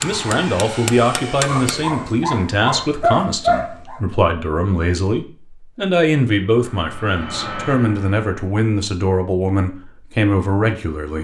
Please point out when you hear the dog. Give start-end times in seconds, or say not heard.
1.4-4.0.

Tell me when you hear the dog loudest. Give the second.
3 s.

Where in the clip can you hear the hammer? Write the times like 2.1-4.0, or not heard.
0.0-1.9.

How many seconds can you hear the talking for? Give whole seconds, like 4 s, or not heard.
11 s.